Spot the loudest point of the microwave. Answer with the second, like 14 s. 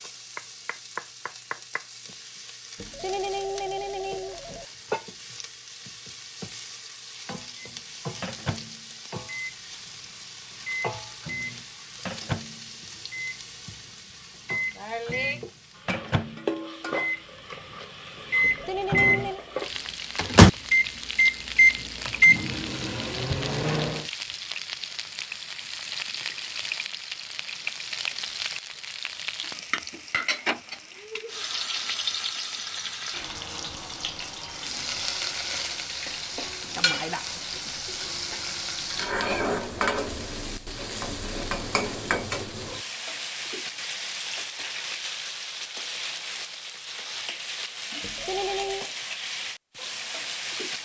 21 s.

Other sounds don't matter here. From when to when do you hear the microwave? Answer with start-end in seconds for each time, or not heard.
7.5-24.1.